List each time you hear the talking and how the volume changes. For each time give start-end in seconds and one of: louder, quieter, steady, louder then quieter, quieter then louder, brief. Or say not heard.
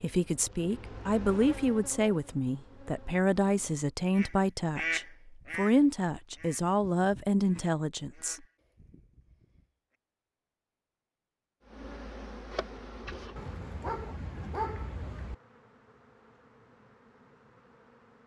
0.0-8.4 steady.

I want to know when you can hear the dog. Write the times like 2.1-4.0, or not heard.
13.3-15.3.